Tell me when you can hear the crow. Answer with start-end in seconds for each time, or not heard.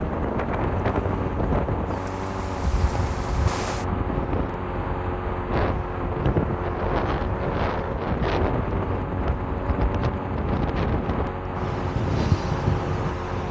not heard.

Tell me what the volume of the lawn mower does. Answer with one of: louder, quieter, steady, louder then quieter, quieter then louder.
steady.